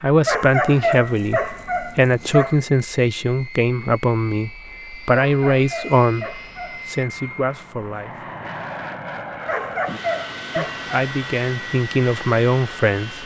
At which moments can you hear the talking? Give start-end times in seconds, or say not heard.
0.0-8.3, 10.6-13.2.